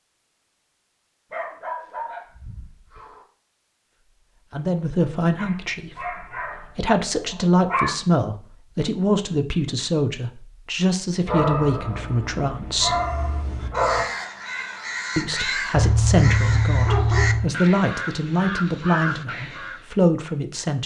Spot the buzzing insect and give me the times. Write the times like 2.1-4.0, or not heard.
not heard.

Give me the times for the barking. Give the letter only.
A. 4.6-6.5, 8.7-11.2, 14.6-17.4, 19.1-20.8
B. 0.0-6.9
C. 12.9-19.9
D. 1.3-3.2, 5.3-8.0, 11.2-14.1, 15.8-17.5
D.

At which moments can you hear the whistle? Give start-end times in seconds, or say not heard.
not heard.